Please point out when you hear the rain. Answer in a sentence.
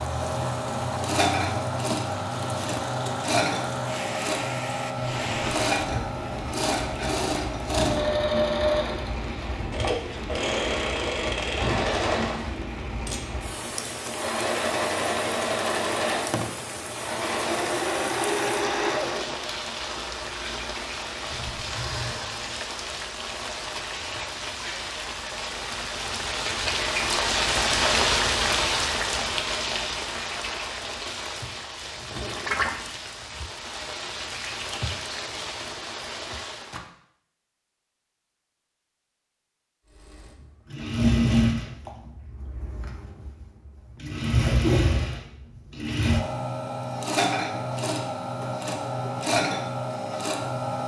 You can hear the rain from 0.0 to 36.9 s.